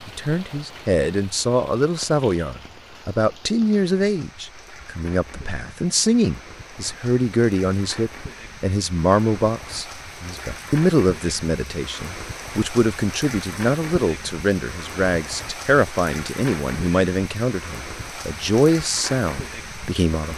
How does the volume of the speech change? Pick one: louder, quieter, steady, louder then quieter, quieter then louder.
steady.